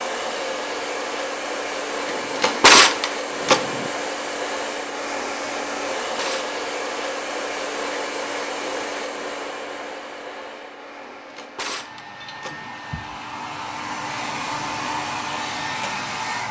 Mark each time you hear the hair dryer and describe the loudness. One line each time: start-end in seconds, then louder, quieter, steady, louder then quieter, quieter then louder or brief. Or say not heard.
0.0-16.4 quieter then louder.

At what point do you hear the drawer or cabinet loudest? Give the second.
3 s.